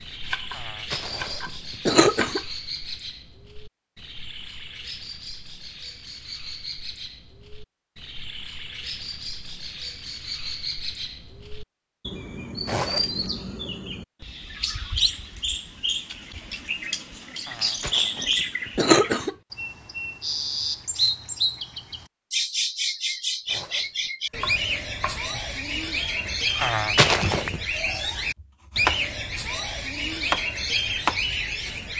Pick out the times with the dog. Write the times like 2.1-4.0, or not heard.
not heard.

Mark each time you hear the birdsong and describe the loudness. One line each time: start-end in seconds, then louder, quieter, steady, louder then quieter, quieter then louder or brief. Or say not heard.
0.0-31.9 louder.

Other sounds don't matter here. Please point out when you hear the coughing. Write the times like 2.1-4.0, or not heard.
0.6-2.4, 17.4-19.4, 26.6-27.6.